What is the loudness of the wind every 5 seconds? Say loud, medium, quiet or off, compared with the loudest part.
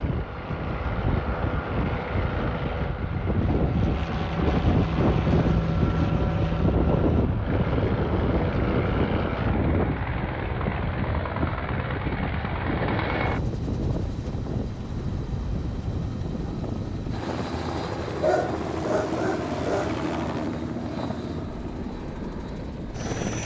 loud, loud, medium, medium, medium.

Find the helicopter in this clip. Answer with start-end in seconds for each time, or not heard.
0.0-23.4.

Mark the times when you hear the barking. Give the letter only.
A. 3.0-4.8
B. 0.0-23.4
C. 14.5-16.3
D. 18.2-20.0
D.